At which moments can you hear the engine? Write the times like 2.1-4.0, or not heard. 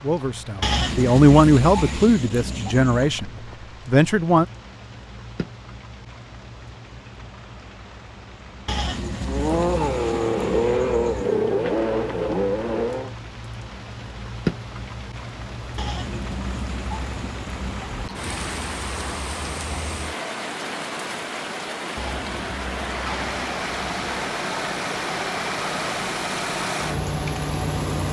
9.2-13.2, 22.9-28.0.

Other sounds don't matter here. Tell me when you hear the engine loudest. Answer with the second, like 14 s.
11 s.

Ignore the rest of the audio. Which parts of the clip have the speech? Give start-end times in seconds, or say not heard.
0.0-4.5.